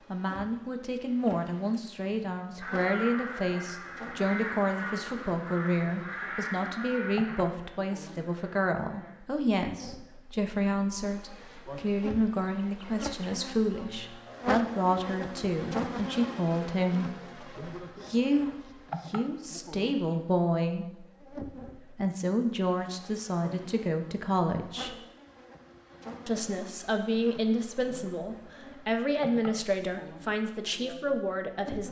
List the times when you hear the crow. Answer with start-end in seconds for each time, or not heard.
2.6-9.2.